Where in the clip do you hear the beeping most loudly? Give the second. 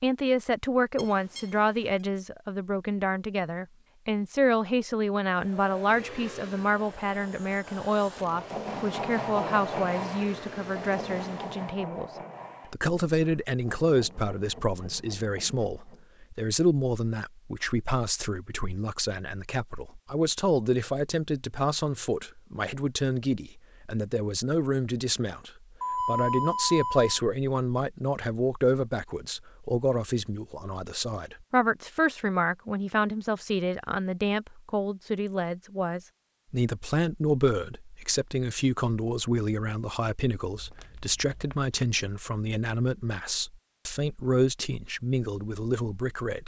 26 s.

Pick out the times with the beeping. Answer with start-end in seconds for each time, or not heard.
0.9-1.9, 25.8-27.1.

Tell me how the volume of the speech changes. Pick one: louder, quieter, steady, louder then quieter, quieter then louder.
steady.